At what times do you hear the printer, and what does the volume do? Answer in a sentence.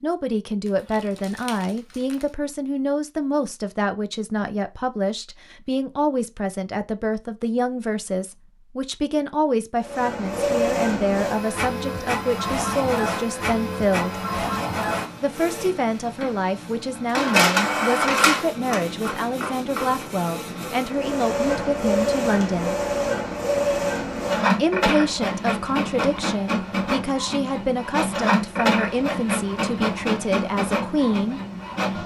You can hear the printer from 9.8 to 32.0 s, at a steady volume.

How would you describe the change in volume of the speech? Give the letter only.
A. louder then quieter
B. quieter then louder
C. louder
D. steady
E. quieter
D.